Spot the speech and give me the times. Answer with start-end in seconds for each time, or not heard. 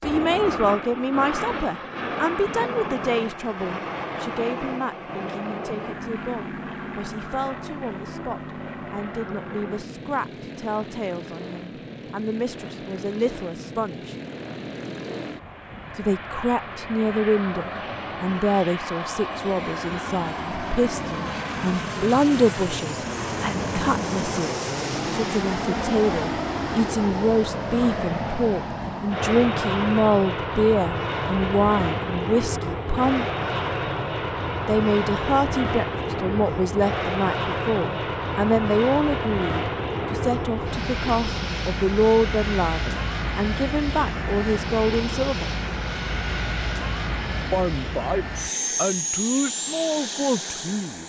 0.0-14.2, 15.9-33.2, 34.6-45.5, 47.5-51.0.